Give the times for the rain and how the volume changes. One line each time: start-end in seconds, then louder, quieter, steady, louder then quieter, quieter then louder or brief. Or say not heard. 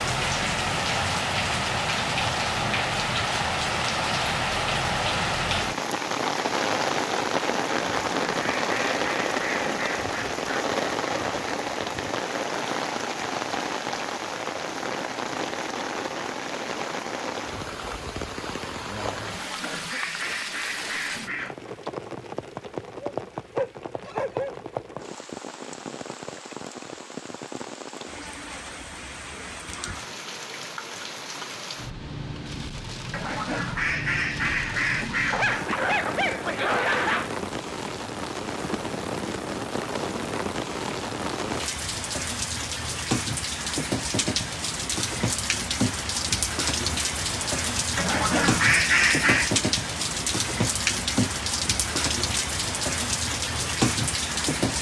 0.0-54.7 quieter then louder.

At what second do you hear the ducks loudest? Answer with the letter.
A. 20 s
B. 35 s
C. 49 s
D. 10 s
C.